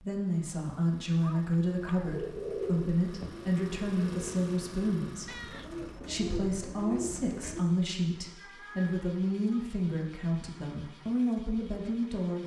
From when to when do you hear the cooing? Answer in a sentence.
The cooing can be heard from 2.0 to 7.7 s.